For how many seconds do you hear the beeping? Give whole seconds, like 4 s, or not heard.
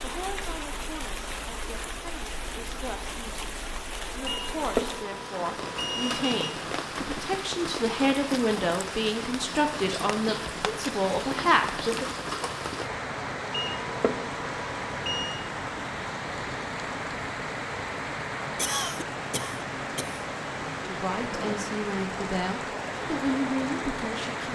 4 s.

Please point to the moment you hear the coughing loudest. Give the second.
19 s.